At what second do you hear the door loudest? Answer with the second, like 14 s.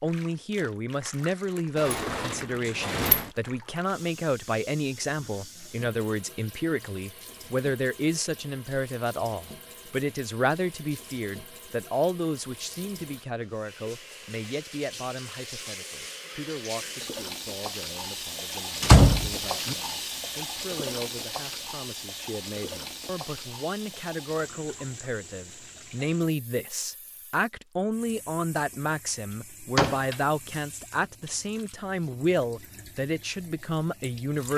19 s.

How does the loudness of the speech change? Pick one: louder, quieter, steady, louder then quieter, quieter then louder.
quieter then louder.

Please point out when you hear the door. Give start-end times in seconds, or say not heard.
1.8-3.3, 18.8-19.8, 29.8-30.2.